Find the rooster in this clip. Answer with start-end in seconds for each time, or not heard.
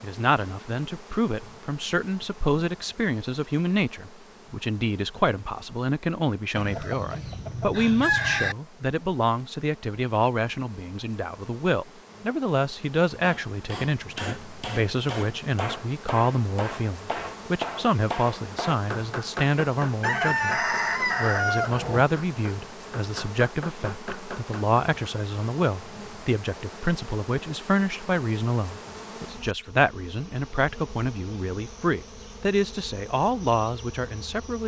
6.5-8.6, 20.0-22.1.